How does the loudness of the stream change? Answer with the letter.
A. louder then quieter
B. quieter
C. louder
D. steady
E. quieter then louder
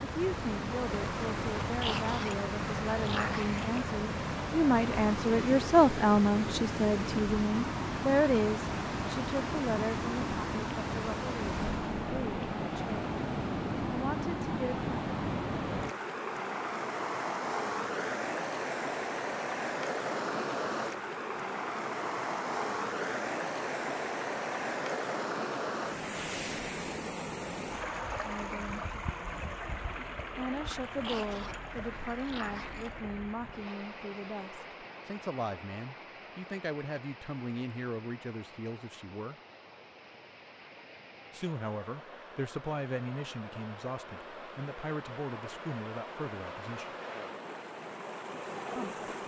B.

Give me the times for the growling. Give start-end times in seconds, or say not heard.
1.8-3.8, 31.0-33.0.